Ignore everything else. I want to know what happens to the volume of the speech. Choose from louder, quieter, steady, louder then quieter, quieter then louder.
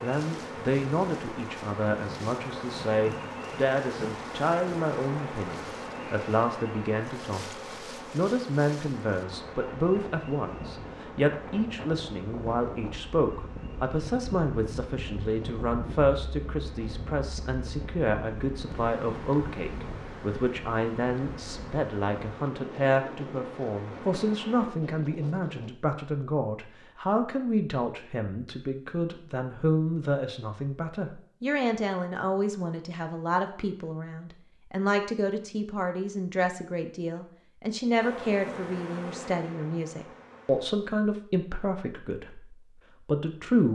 steady.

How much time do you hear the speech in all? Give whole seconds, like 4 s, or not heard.
44 s.